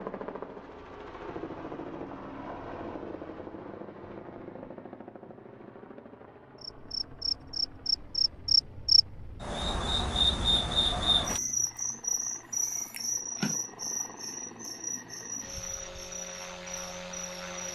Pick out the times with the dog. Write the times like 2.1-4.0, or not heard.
not heard.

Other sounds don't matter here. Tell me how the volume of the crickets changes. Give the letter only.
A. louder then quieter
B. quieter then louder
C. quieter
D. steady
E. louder
C.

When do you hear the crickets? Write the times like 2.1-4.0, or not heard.
6.6-17.6.